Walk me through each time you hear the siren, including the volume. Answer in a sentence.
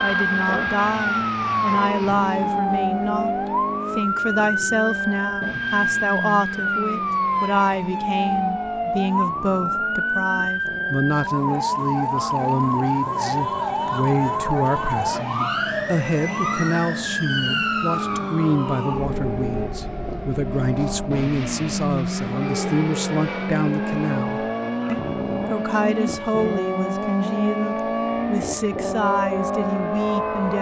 The siren can be heard from 0.0 to 30.5 s, getting quieter.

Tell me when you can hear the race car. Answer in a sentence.
The race car can be heard from 0.0 to 30.5 s.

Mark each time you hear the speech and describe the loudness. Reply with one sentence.
The speech can be heard from 0.0 to 30.5 s, at a steady volume.